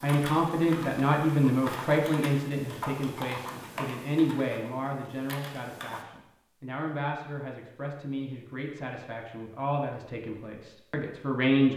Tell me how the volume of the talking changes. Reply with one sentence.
The volume of the talking goes down.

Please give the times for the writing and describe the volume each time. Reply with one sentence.
The writing can't be heard in this clip.